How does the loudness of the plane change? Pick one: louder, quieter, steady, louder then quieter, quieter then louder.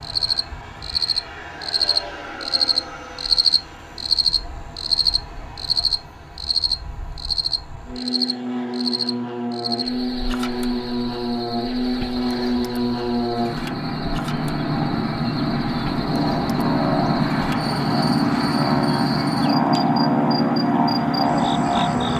louder.